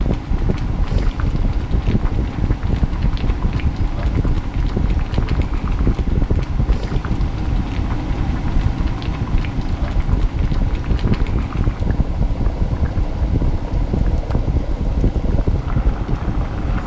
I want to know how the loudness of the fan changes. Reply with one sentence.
The loudness of the fan stays about the same.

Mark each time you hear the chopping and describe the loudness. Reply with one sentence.
The chopping can't be heard in this clip.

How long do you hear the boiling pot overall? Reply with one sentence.
You can hear the boiling pot for 17 seconds altogether.